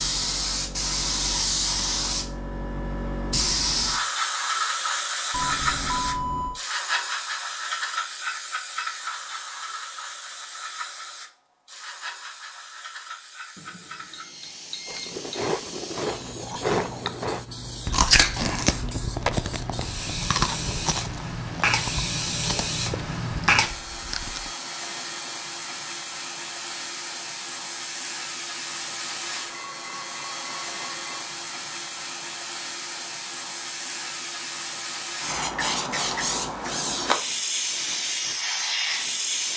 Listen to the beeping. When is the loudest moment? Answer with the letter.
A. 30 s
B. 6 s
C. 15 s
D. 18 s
B.